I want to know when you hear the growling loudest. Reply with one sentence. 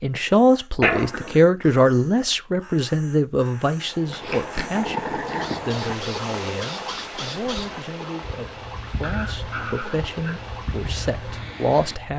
The volume of the growling peaks at 1 second.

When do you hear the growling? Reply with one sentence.
You can hear the growling from 0.8 to 1.4 s, from 4.1 to 6.0 s and from 9.0 to 10.4 s.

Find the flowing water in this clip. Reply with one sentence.
You can hear the flowing water from 3.7 to 11.9 s.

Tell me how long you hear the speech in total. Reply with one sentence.
You can hear the speech for 12 seconds altogether.